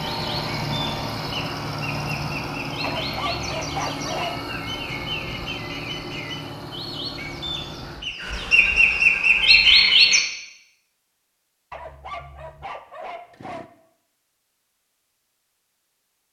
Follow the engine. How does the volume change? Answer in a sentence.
The loudness of the engine goes down.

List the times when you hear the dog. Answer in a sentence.
You can hear the dog from 2.8 to 4.4 s and from 11.7 to 13.7 s.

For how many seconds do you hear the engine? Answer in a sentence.
You can hear the engine for 8 seconds altogether.